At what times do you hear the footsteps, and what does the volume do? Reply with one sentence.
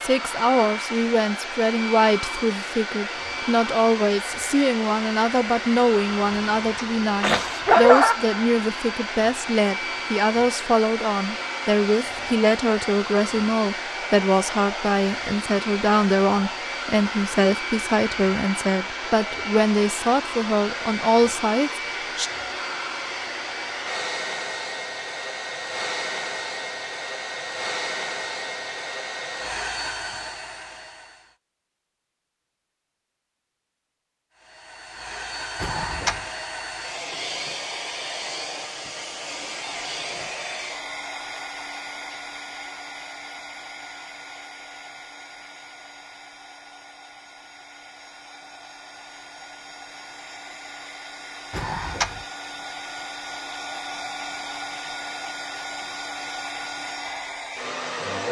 The footsteps can't be heard in this clip.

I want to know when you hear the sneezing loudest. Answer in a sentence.
The volume of the sneezing peaks at 8 seconds.